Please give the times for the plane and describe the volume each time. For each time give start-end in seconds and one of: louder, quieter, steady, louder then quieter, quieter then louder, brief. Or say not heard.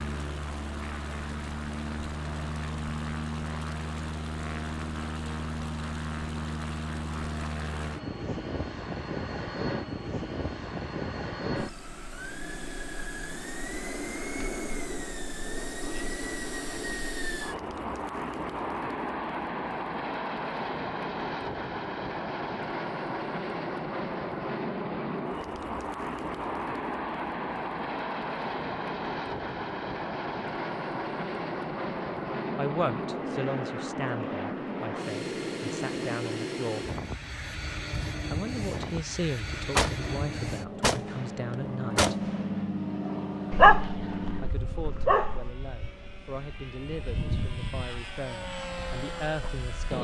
0.0-49.9 steady.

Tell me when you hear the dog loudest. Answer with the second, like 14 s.
44 s.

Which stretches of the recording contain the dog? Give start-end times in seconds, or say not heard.
43.5-45.5.